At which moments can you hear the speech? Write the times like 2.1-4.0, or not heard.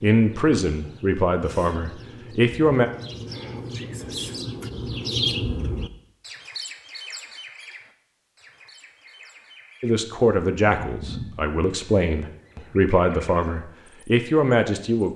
0.0-2.9, 9.8-15.1.